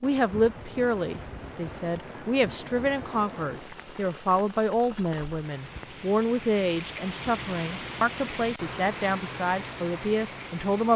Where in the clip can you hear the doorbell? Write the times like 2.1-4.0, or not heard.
not heard.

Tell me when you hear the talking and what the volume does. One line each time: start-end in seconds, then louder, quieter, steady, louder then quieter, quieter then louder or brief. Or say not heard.
0.0-10.9 steady.